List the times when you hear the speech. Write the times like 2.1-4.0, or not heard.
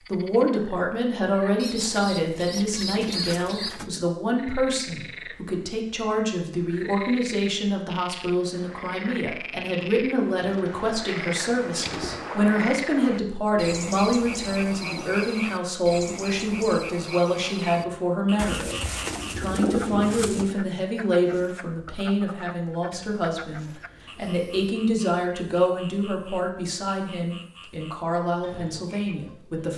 0.0-29.7.